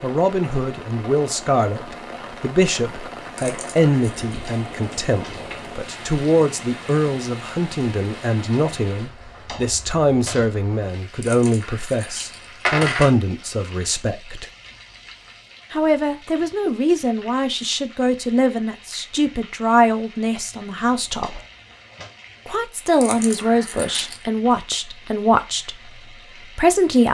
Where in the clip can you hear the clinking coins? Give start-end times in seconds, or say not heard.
3.4-4.4, 11.2-13.1, 23.0-24.2.